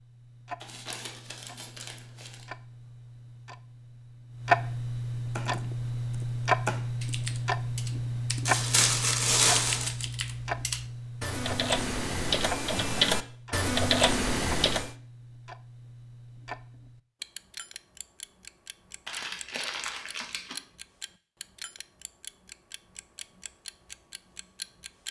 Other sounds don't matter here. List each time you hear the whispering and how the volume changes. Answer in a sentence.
The whispering can't be heard in this clip.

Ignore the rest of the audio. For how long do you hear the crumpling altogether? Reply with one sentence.
You can hear the crumpling for 5 seconds altogether.